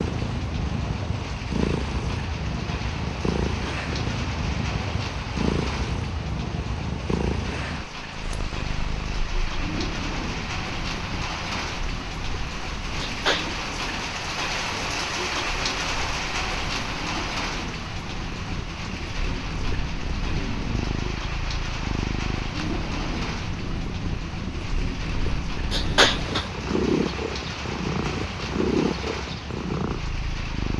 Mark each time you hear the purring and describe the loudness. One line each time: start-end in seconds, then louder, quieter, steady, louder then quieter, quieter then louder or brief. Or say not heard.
0.0-30.7 quieter then louder.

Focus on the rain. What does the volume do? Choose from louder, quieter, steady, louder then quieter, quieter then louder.
louder then quieter.